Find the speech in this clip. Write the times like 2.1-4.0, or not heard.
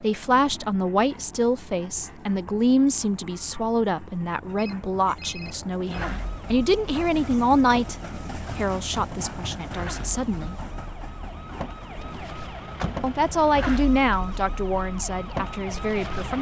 0.0-8.0, 8.6-10.6, 13.0-16.3.